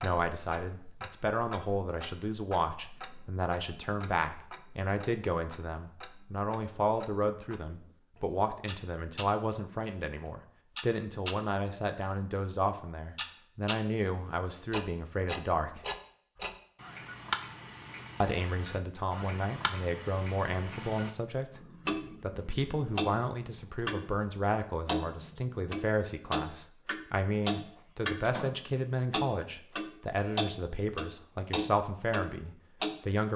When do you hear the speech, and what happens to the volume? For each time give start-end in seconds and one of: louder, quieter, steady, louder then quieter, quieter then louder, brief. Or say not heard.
0.0-15.8 steady
18.2-33.3 steady.